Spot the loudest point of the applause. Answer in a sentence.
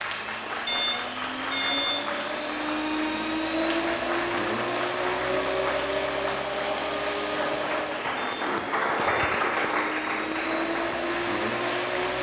The loudest moment of the applause is at 9 seconds.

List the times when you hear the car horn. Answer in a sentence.
You can hear the car horn from 0.7 to 2.0 s and from 8.2 to 9.3 s.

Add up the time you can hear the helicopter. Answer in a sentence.
The helicopter can be heard for 12 seconds in total.